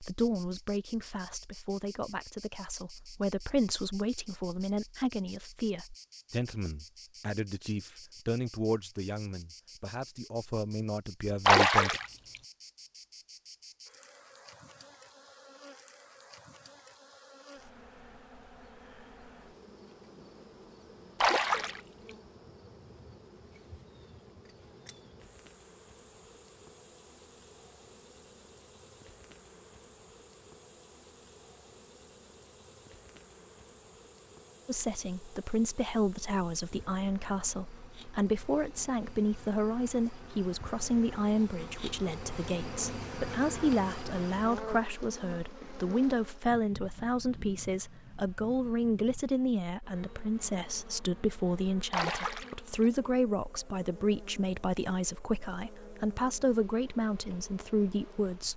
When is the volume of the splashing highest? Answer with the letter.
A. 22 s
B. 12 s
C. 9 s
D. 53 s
B.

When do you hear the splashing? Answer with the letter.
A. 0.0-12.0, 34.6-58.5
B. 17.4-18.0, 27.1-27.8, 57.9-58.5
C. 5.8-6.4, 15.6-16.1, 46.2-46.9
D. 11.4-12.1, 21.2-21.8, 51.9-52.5
D.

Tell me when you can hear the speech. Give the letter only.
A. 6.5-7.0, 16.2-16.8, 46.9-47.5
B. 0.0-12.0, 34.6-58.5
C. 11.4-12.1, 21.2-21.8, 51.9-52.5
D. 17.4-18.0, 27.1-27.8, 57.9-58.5
B.